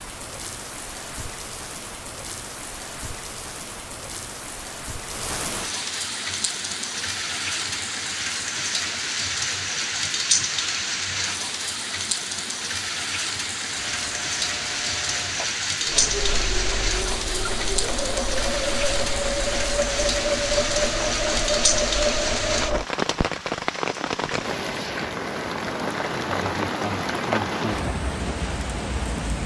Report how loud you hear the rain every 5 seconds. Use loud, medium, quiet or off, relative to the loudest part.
medium, loud, loud, loud, loud, loud.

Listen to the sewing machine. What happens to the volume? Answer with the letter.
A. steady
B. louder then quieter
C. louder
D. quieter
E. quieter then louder
C.